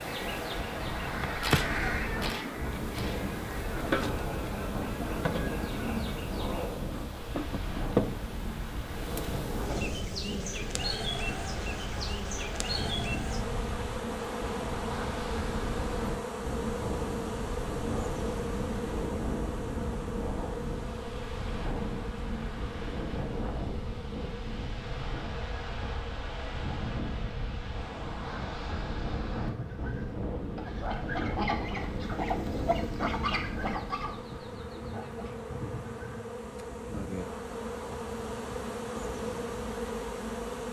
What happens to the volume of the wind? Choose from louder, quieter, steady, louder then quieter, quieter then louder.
steady.